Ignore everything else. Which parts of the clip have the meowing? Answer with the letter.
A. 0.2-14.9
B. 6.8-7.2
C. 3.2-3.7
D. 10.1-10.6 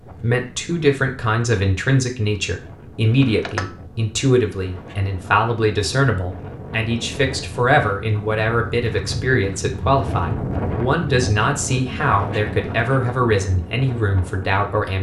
C.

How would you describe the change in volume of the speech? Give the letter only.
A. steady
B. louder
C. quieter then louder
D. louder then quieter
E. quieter
A.